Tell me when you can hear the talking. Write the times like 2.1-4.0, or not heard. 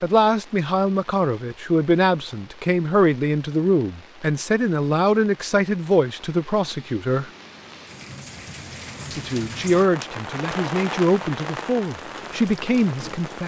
0.0-7.3, 9.1-13.4.